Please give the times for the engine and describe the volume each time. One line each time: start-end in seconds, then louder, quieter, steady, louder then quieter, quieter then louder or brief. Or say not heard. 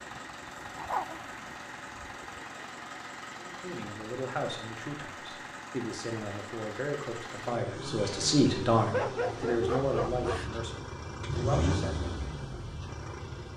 0.0-13.5 louder.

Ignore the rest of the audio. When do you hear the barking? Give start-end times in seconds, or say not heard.
0.5-2.1, 8.9-10.5.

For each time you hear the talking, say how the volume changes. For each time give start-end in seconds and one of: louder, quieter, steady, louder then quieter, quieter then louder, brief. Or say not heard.
3.4-12.1 louder then quieter.